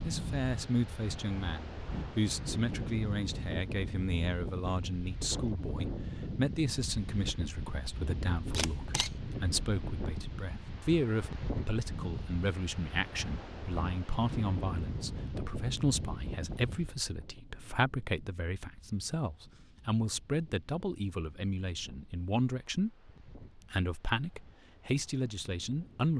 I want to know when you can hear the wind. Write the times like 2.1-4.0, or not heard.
0.0-26.1.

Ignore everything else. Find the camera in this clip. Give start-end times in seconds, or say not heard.
8.5-9.1.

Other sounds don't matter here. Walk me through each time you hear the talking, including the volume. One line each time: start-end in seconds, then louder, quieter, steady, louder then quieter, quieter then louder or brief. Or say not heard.
0.0-26.1 steady.